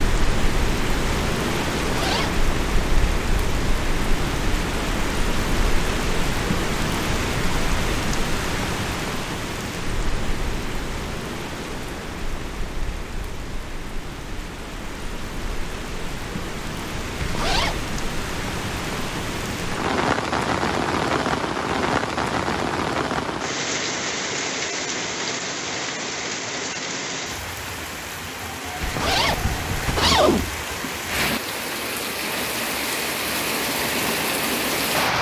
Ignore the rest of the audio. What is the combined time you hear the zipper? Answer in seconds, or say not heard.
3 s.